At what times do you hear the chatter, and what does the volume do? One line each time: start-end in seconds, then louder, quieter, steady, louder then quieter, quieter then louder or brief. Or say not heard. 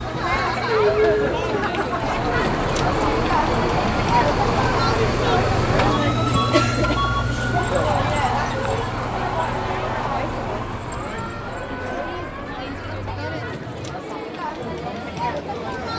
0.0-15.9 quieter.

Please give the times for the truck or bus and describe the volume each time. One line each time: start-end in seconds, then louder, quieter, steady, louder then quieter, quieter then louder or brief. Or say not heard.
2.0-13.9 quieter.